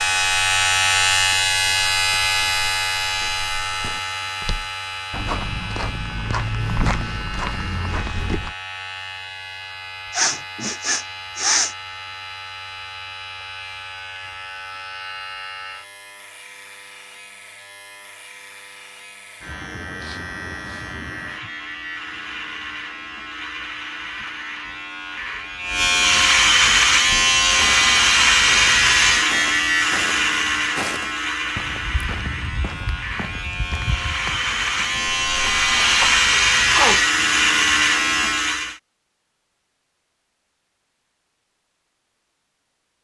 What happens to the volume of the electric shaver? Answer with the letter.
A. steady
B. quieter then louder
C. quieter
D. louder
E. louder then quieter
B.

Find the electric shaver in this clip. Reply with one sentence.
The electric shaver can be heard from 0.0 to 38.8 s.